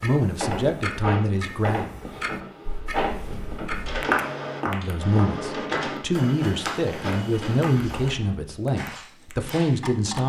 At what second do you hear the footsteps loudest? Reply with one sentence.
The volume of the footsteps peaks at 4 seconds.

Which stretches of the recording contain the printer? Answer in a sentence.
You can hear the printer from 0.2 to 8.4 s.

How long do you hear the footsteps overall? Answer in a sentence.
The footsteps can be heard for 7 seconds in total.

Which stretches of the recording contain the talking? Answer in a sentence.
The talking can be heard from 0.0 to 1.9 s and from 4.7 to 10.2 s.